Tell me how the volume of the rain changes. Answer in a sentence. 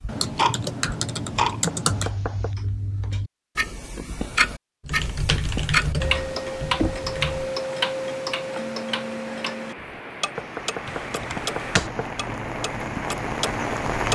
The loudness of the rain goes up.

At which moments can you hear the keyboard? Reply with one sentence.
The keyboard can be heard from 0.1 to 2.1 s, from 4.8 to 7.5 s and from 10.8 to 11.9 s.